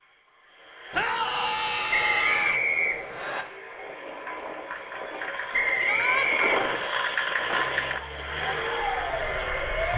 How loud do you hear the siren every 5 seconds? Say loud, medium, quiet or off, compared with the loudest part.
off, loud.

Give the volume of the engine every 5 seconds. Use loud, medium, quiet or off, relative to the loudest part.
medium, loud.